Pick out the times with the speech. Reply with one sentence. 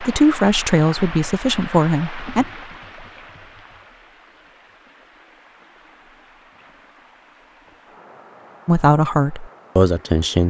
You can hear the speech from 0.0 to 2.5 s and from 8.7 to 10.4 s.